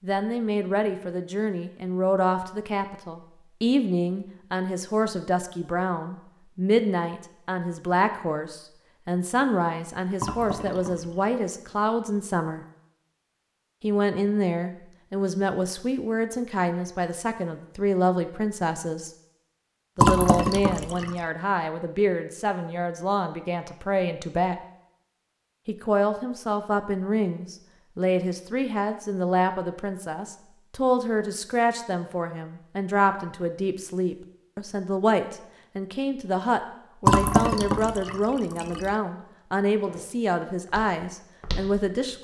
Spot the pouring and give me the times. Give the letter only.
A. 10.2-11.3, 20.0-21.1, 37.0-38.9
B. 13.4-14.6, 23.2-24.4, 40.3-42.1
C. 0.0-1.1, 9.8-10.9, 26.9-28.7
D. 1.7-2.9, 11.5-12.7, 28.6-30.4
A.